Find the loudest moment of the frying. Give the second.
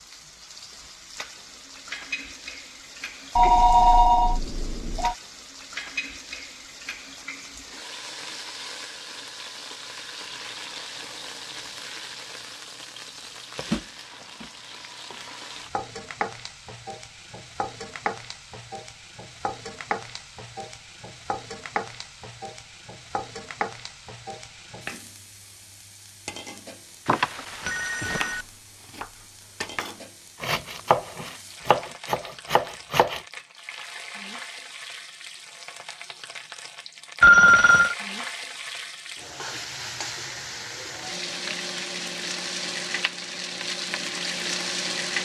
45 s.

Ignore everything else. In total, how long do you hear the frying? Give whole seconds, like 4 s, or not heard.
45 s.